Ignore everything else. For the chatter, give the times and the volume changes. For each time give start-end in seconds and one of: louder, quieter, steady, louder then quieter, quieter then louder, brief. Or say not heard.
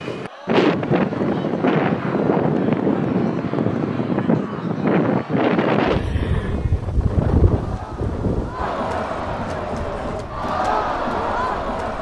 0.1-11.9 louder.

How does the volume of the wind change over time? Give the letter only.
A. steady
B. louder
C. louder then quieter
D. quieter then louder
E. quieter
E.